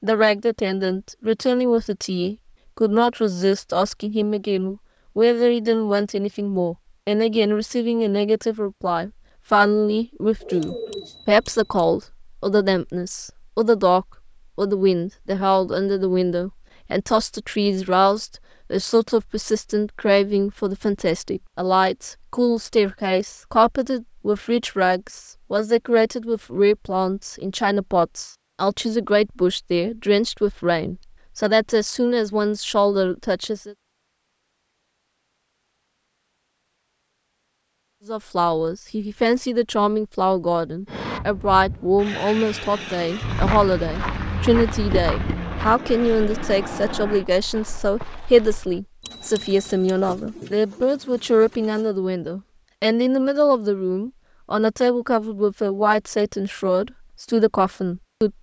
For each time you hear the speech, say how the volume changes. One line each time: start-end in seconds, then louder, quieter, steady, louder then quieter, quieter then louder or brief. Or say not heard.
0.0-33.8 steady
38.0-58.3 steady.